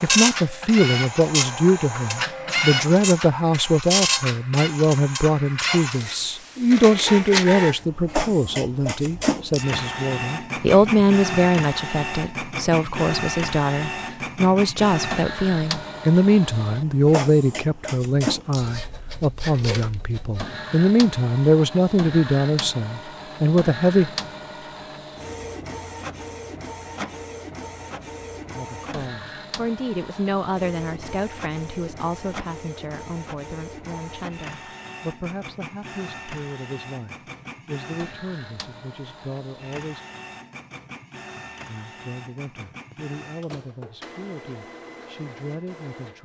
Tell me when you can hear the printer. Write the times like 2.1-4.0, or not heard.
0.0-46.2.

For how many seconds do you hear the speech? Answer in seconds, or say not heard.
40 s.